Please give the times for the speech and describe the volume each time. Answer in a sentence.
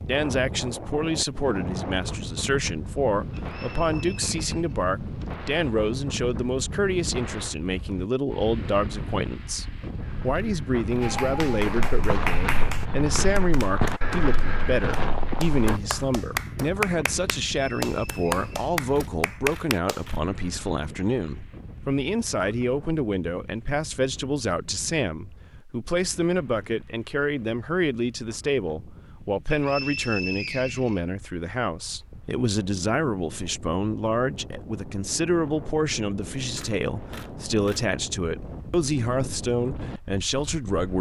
The speech can be heard from 0.1 to 40.9 s, at a steady volume.